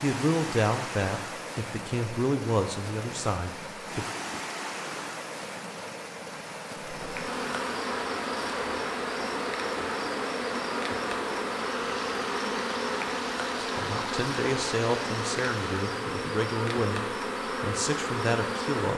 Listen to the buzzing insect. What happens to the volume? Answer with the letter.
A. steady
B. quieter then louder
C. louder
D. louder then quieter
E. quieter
A.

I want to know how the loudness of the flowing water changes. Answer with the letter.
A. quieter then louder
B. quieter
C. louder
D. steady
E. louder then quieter
D.